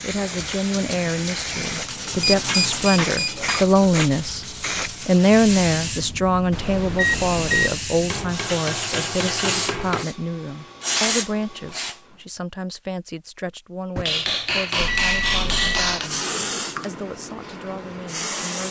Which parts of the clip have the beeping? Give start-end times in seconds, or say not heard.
2.0-3.5, 6.5-7.8, 14.8-16.0.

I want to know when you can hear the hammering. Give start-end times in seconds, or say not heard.
2.0-4.2, 8.1-10.1, 13.9-16.1.